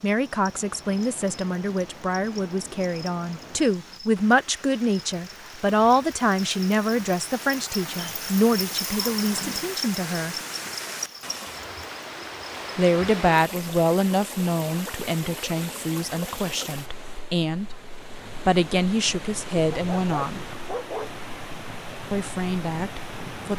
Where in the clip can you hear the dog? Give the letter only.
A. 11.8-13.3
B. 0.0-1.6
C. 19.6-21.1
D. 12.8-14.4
C.